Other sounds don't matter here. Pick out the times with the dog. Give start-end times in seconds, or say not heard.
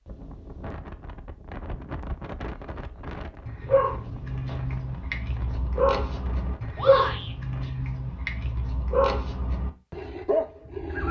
3.5-11.0.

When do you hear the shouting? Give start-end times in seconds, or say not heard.
6.8-7.3.